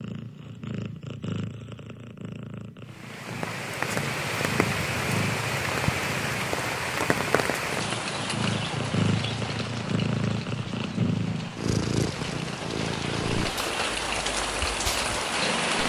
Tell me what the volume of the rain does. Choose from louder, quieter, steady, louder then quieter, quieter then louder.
quieter then louder.